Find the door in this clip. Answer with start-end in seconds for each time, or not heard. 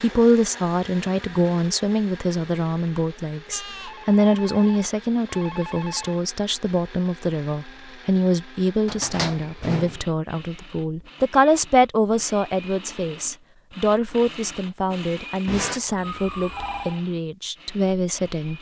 8.8-10.1.